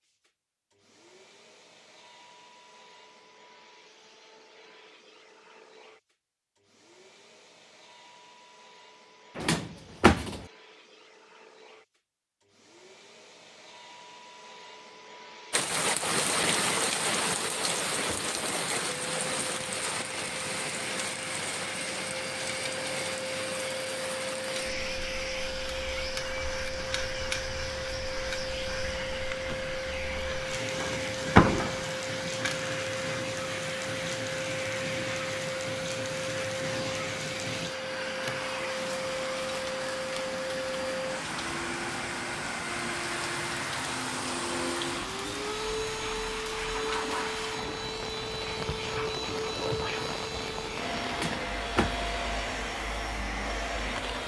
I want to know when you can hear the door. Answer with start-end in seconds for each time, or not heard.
9.3-10.4, 30.8-31.9, 51.1-52.1.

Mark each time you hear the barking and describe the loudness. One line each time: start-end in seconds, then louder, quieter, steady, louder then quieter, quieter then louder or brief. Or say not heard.
not heard.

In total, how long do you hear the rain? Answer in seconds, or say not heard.
39 s.